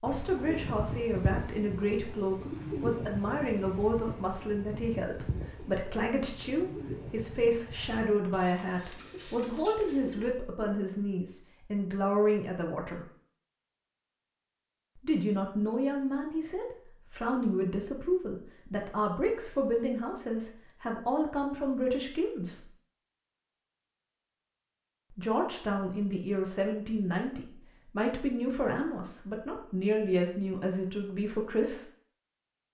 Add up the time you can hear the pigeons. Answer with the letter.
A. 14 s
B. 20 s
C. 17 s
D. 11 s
D.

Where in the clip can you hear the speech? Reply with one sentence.
You can hear the speech from 0.0 to 13.1 s, from 15.0 to 22.6 s and from 25.1 to 31.9 s.